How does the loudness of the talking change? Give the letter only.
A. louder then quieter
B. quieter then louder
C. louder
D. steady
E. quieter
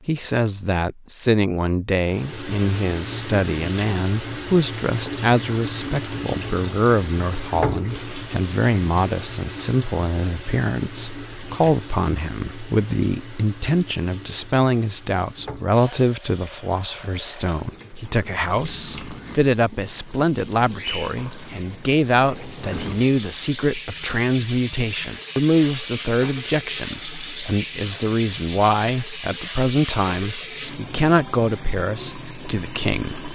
D.